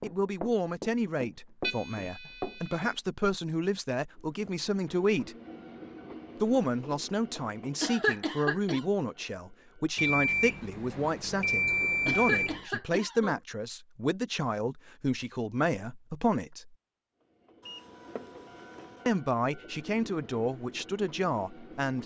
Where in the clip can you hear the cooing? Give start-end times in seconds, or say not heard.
not heard.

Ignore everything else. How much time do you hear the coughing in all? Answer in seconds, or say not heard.
2 s.